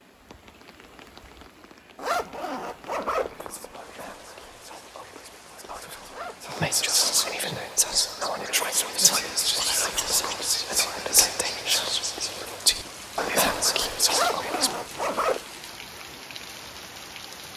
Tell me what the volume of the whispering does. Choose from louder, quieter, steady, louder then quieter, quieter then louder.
louder.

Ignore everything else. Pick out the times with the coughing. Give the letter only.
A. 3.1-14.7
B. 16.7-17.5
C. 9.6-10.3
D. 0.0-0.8
C.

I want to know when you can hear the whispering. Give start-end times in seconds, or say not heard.
3.1-14.7.